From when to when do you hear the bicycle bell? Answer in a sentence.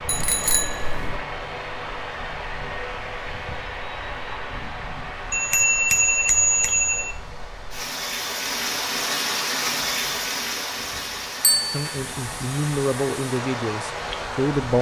You can hear the bicycle bell from 0.1 to 1.2 s, from 5.3 to 7.2 s and from 11.4 to 11.8 s.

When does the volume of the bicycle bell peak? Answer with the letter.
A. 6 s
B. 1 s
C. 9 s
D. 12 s
A.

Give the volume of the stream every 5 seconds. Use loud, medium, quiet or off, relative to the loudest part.
quiet, loud, loud.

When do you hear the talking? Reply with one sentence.
The talking can be heard from 11.7 to 14.7 s.